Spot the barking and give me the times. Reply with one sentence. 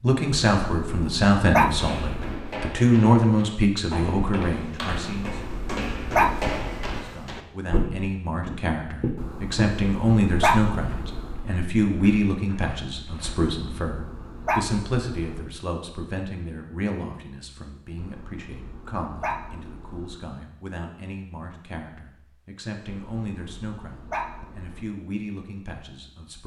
The barking can be heard from 0.5 to 2.4 s, from 4.9 to 7.0 s, from 9.2 to 11.4 s, from 13.2 to 15.5 s, from 17.9 to 20.2 s and from 22.9 to 24.9 s.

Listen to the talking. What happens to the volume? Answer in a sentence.
The volume of the talking goes down.